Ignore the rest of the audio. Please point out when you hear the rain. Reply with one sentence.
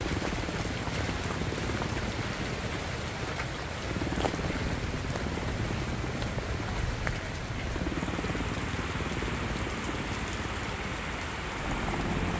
You can hear the rain from 0.0 to 12.3 s.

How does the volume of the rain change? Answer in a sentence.
The volume of the rain stays about the same.